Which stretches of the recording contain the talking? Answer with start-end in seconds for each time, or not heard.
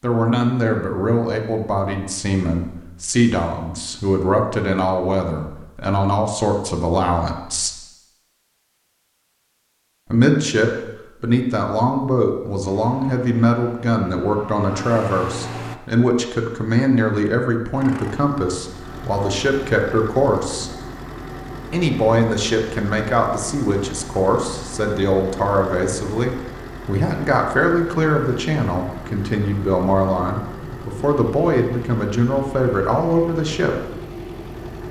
0.0-7.7, 10.1-20.7, 21.7-33.9.